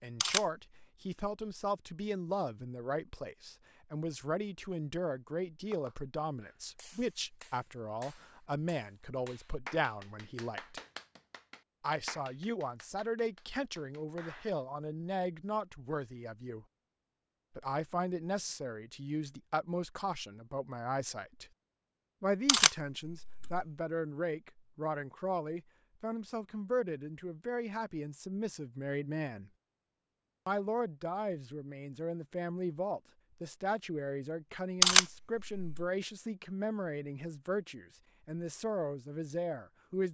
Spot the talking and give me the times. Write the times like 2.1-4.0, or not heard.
0.0-10.8, 11.8-16.6, 17.6-21.5, 22.2-29.5, 30.4-40.0.